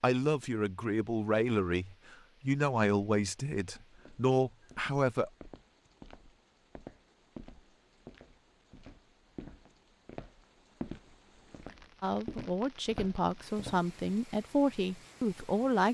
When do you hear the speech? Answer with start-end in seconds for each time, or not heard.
0.0-5.3, 12.0-15.8.